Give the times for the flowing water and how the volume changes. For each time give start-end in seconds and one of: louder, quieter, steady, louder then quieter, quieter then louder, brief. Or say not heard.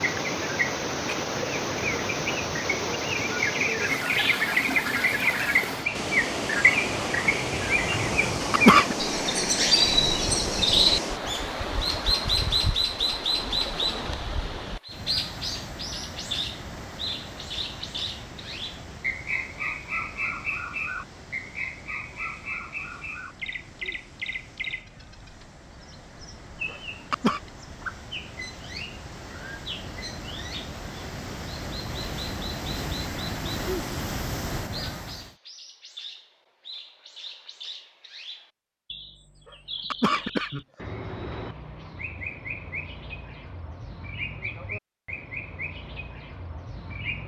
0.0-35.4 quieter then louder.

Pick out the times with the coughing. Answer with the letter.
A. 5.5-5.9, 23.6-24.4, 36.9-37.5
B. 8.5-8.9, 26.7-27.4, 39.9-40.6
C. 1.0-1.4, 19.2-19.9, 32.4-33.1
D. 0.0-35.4
B.